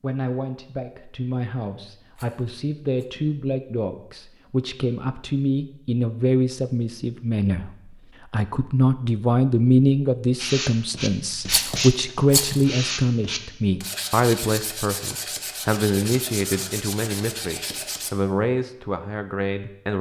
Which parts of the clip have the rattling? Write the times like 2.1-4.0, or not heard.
2.1-3.0, 11.4-12.7.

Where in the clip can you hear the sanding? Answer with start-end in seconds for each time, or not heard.
10.3-18.1.